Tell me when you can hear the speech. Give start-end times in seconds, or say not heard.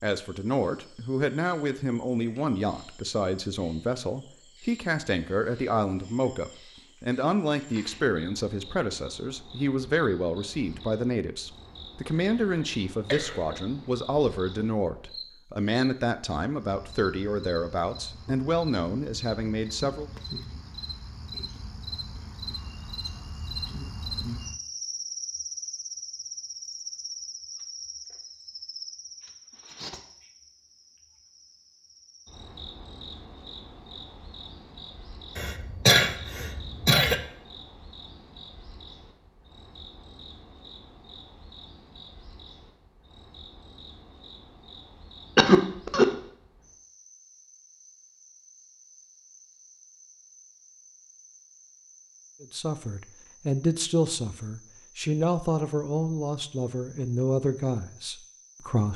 0.0-20.1, 52.4-58.9.